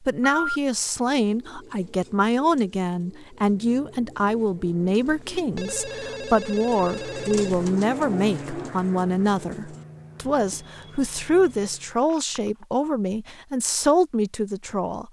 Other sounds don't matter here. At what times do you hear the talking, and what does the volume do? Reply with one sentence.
The talking can be heard from 0.1 to 15.0 s, at a steady volume.